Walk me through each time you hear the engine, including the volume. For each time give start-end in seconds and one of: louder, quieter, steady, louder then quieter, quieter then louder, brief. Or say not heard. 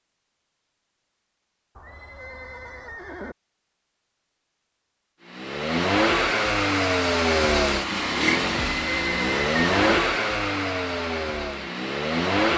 5.2-12.5 quieter.